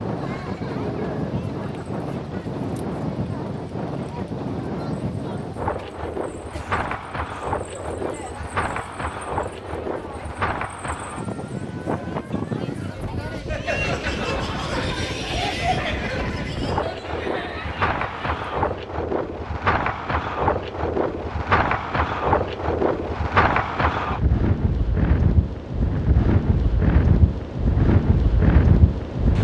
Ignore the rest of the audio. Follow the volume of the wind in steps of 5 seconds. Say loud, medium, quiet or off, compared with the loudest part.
medium, medium, medium, medium, loud, loud.